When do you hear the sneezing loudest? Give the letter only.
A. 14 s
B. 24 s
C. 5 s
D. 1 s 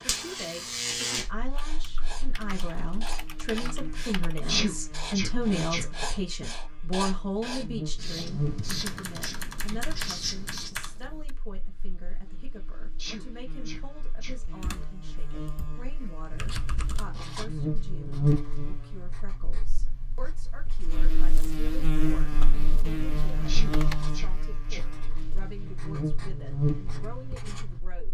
C.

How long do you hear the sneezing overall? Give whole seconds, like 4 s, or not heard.
4 s.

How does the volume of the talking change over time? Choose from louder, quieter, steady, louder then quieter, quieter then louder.
quieter.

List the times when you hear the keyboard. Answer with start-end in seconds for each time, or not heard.
1.6-4.4, 8.7-11.3, 14.4-17.1, 22.3-24.0.